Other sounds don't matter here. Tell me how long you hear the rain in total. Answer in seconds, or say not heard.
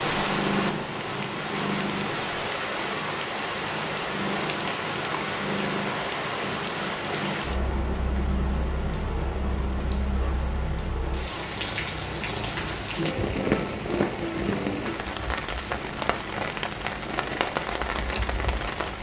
19 s.